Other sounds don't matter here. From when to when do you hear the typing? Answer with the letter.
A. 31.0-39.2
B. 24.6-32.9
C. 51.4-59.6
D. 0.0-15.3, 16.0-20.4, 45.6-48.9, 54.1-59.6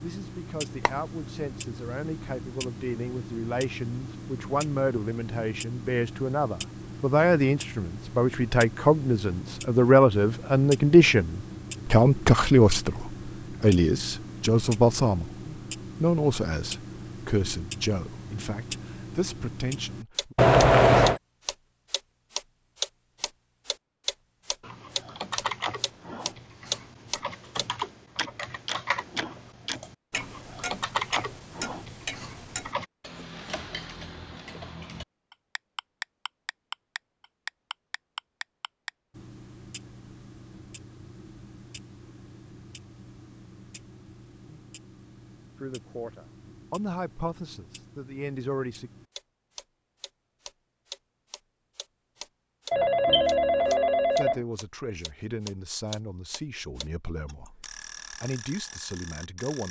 B.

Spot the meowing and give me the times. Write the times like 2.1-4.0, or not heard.
not heard.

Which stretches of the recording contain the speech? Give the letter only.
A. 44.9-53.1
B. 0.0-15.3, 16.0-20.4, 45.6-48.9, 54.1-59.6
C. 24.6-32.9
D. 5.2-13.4
B.